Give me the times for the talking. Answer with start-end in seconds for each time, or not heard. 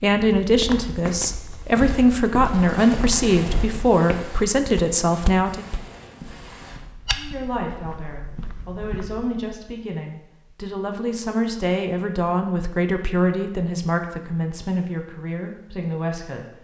0.0-5.7, 7.2-16.5.